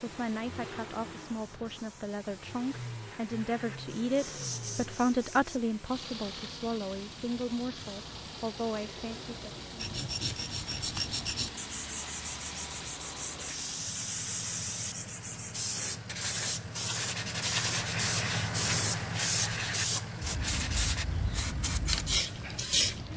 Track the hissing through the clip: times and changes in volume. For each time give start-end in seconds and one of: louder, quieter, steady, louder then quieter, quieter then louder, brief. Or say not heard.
0.0-23.1 louder.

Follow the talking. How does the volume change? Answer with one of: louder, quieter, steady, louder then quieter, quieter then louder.
louder then quieter.